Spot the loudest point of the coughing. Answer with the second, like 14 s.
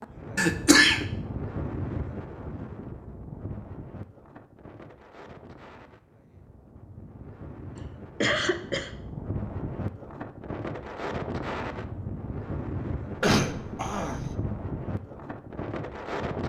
1 s.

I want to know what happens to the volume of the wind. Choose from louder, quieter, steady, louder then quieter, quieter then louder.
quieter then louder.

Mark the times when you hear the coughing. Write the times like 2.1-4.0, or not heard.
0.3-1.1, 8.2-8.9, 13.2-14.3.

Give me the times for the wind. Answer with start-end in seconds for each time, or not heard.
0.0-16.4.